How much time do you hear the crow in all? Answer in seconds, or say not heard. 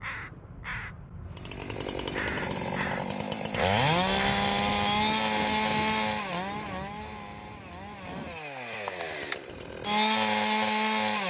5 s.